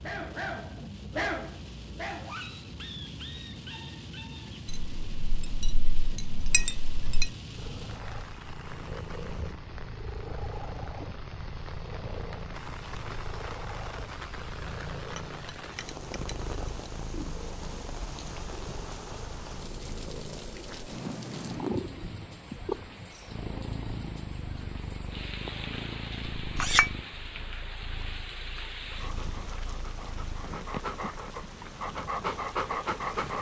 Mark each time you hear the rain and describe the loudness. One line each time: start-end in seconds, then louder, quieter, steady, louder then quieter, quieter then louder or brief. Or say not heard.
0.0-33.3 steady.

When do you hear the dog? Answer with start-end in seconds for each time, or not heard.
0.0-4.6, 28.9-33.3.